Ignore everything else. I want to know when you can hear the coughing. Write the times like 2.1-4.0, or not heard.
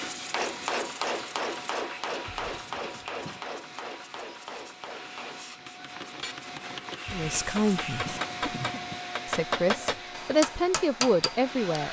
2.2-3.5, 7.0-9.0.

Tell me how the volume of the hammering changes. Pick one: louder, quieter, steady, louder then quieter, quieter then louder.
quieter then louder.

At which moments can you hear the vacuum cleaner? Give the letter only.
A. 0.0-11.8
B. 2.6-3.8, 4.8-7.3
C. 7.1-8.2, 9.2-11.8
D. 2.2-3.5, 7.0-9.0
A.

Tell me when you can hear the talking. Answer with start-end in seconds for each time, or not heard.
7.1-8.2, 9.2-11.8.